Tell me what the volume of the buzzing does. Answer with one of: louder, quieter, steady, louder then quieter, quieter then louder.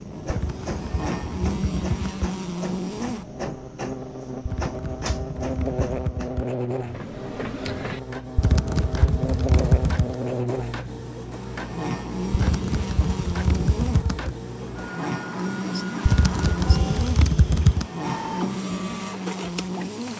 steady.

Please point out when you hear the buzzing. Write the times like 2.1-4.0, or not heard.
0.0-20.1.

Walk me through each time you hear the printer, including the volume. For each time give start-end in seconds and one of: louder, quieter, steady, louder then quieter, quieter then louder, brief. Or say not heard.
0.0-20.1 steady.